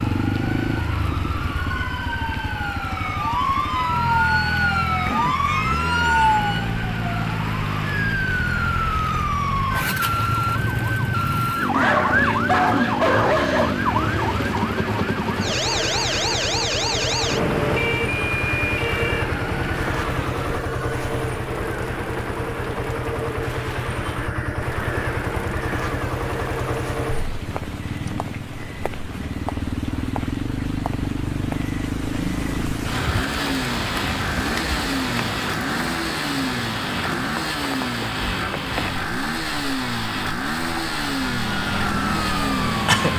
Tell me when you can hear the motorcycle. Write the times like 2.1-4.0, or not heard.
0.0-43.1.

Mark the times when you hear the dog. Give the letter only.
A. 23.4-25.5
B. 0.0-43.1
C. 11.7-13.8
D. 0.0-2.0
C.